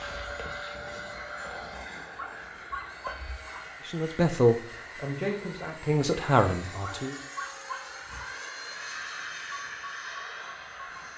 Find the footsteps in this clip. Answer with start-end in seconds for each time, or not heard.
not heard.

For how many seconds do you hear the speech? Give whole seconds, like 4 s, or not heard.
3 s.